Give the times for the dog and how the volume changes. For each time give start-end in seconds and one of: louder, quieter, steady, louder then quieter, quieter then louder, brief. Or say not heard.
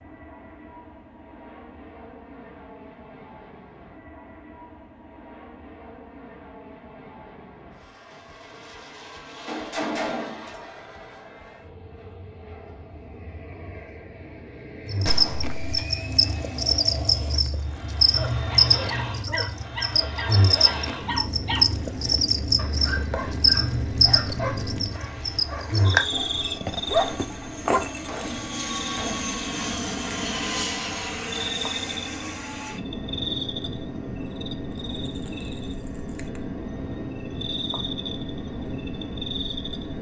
18.1-27.9 louder.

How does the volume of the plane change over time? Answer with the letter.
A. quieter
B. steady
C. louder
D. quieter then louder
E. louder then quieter
C.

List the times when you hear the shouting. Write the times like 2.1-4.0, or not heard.
not heard.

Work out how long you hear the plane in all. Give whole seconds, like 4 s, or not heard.
40 s.